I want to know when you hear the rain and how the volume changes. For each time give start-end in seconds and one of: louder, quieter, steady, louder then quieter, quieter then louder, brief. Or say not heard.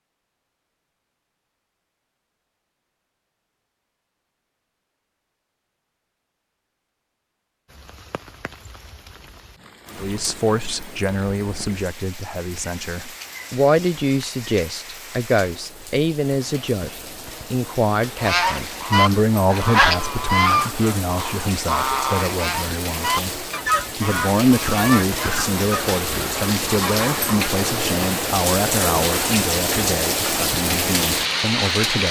7.7-32.0 louder.